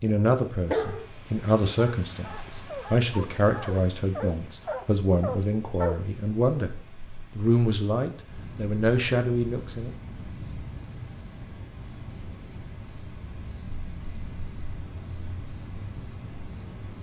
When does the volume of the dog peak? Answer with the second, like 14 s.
1 s.